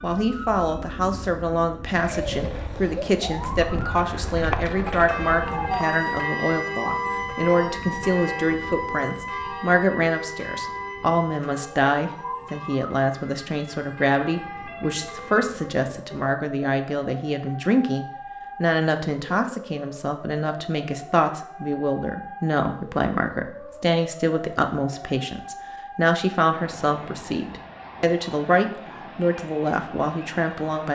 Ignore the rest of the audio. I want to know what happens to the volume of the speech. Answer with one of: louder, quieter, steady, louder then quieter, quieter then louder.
steady.